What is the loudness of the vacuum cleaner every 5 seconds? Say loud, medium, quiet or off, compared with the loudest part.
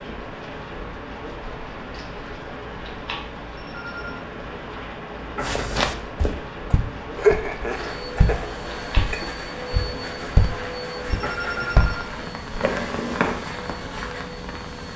off, loud, loud.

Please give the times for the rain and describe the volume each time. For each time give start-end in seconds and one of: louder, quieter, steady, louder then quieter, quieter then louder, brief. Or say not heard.
0.0-14.9 steady.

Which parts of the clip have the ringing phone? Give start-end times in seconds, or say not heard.
3.5-4.2, 11.2-12.1.